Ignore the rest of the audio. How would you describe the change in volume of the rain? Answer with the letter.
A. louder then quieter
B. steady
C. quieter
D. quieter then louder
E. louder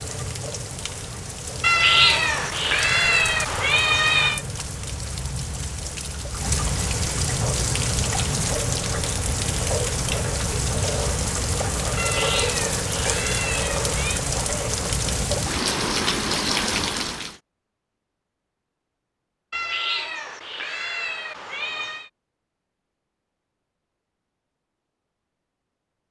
E.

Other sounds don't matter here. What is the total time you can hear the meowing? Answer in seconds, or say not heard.
8 s.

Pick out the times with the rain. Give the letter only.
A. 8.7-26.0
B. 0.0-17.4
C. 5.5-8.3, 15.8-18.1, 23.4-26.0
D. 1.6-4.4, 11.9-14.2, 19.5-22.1
B.